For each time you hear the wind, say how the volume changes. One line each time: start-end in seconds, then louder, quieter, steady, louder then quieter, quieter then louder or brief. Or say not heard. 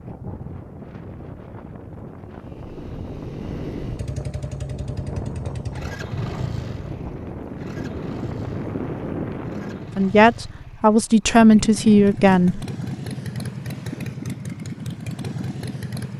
0.0-9.9 louder.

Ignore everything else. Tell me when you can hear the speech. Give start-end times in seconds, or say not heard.
9.9-12.7.